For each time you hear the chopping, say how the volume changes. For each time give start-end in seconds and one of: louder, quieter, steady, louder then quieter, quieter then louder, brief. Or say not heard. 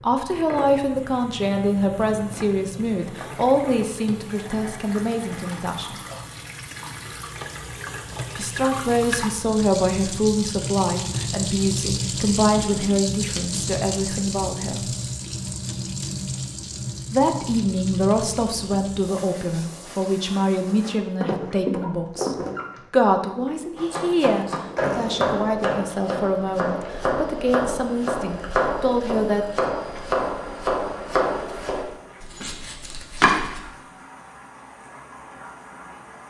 23.8-33.6 quieter.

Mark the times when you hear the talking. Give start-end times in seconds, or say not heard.
0.0-6.0, 8.3-14.9, 17.1-29.4.